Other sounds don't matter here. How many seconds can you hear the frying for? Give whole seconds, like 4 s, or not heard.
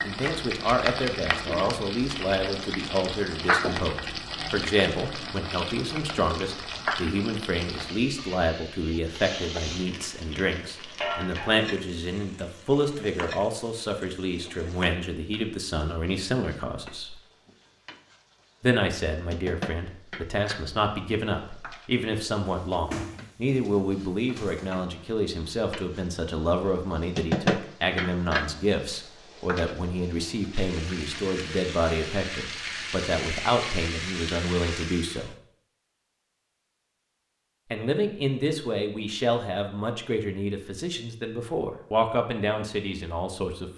35 s.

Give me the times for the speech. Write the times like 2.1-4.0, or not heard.
0.0-17.1, 18.6-35.3, 37.7-43.7.